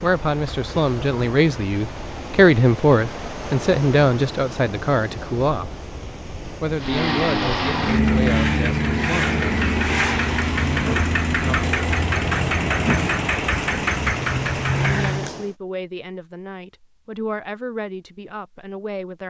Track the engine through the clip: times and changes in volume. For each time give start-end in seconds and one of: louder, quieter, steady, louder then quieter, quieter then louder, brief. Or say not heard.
6.8-15.3 steady.